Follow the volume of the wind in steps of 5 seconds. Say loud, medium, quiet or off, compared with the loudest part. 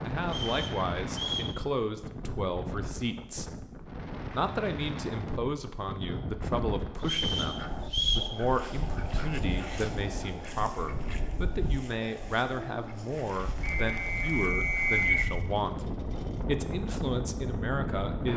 loud, loud, medium, loud.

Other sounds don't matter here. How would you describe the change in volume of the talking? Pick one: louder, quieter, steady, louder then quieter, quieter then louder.
steady.